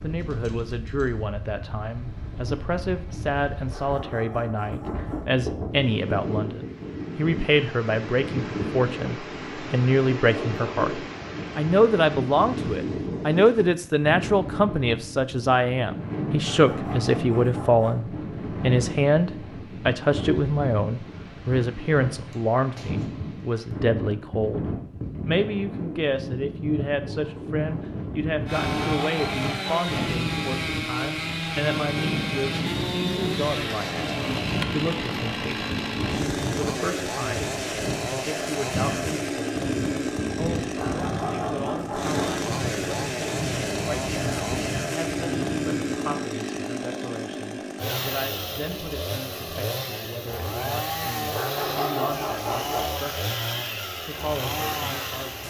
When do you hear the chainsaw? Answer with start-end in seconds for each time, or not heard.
28.4-55.4.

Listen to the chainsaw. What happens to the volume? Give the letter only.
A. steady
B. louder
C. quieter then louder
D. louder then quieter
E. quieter
A.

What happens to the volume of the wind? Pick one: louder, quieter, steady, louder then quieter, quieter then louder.
steady.